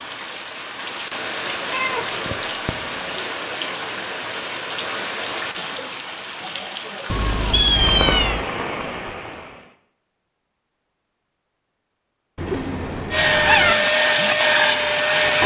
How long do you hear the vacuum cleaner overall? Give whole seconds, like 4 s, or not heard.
2 s.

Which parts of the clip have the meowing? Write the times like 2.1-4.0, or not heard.
1.7-3.1, 7.1-8.4, 12.3-13.8.